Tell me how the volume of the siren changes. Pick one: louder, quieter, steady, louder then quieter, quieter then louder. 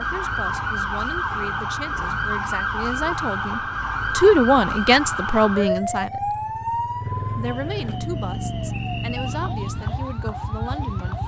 quieter.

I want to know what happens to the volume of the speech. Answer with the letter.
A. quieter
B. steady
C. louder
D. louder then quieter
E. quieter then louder
D.